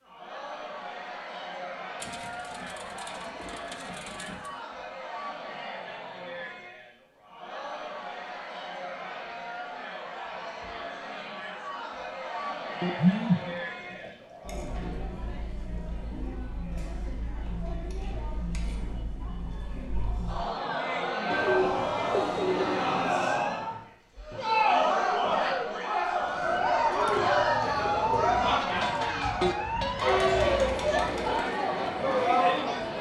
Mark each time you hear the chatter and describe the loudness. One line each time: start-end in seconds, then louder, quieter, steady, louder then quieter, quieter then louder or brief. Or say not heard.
0.0-32.9 louder.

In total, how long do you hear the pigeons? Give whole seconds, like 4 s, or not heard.
9 s.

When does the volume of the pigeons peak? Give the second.
13 s.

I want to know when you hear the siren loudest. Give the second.
28 s.